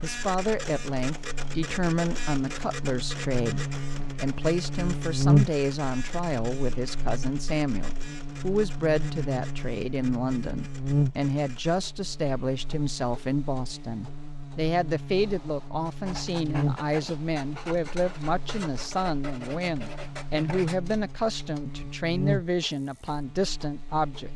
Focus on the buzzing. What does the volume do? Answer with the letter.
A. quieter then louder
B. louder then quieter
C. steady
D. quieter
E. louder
B.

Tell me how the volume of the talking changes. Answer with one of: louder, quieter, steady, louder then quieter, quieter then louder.
steady.